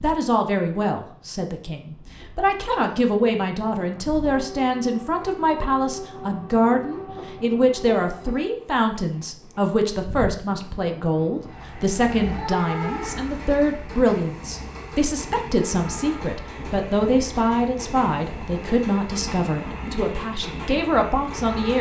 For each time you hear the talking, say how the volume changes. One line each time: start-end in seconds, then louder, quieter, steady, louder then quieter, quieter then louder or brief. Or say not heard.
0.0-21.7 steady.